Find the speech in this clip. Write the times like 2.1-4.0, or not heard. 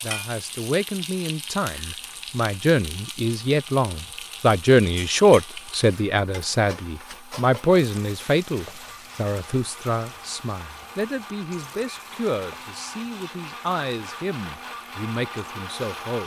0.0-16.2.